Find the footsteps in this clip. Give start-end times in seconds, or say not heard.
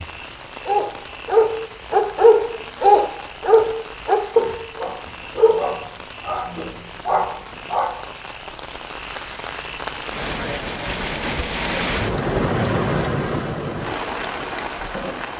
not heard.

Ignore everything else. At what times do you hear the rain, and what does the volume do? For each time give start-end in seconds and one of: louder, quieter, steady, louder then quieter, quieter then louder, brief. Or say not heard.
0.0-15.3 louder.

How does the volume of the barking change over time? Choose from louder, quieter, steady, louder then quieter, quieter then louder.
quieter.